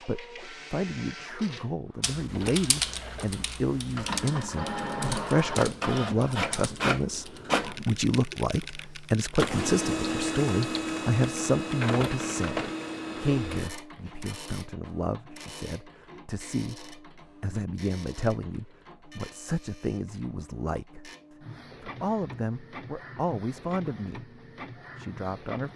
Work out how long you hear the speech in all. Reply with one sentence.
You can hear the speech for 24 seconds altogether.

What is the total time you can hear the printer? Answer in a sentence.
The printer can be heard for 26 seconds in total.